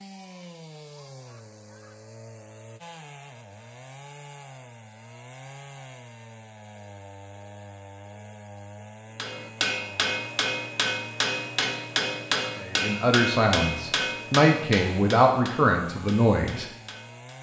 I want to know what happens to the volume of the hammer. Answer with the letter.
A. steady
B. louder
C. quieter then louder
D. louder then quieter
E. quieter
E.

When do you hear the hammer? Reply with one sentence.
The hammer can be heard from 9.2 to 17.3 s.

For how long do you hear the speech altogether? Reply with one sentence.
You can hear the speech for 4 seconds altogether.